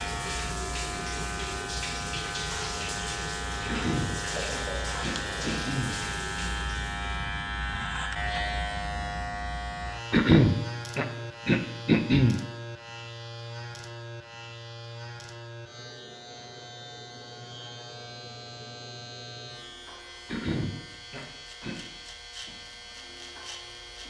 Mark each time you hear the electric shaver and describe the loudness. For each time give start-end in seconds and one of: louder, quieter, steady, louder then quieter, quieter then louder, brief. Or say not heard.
0.0-24.0 quieter.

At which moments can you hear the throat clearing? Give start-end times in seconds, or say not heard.
3.6-6.0, 10.1-12.4, 20.2-21.8.